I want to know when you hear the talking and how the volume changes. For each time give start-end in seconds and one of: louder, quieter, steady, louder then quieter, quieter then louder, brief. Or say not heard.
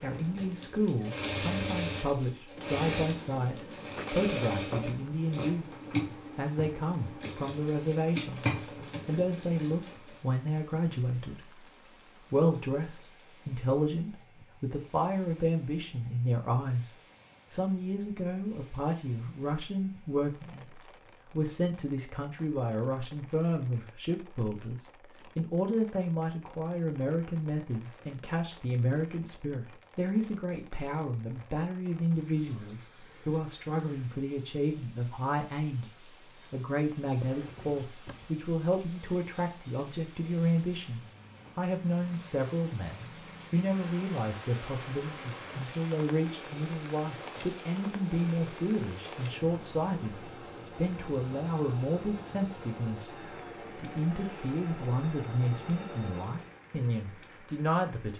0.0-11.7 steady
12.3-58.1 steady.